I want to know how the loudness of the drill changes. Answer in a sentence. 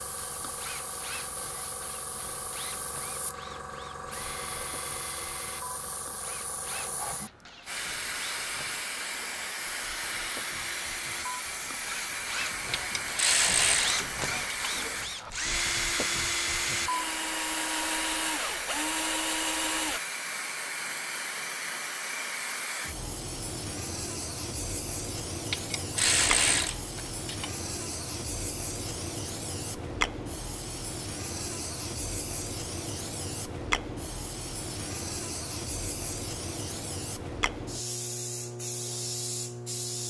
The volume of the drill goes up.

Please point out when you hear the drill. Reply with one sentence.
You can hear the drill from 0.0 to 20.0 s.